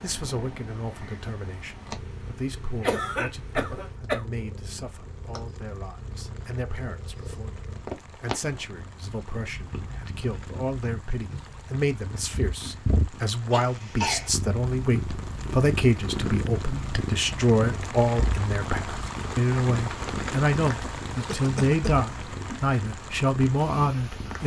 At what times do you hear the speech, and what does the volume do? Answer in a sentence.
You can hear the speech from 0.0 to 24.4 s, getting louder.